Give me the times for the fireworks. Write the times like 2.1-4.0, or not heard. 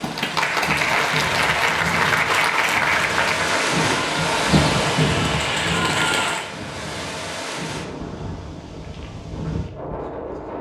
not heard.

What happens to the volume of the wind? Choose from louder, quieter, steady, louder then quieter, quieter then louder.
louder then quieter.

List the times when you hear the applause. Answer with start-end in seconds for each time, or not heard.
0.0-6.5.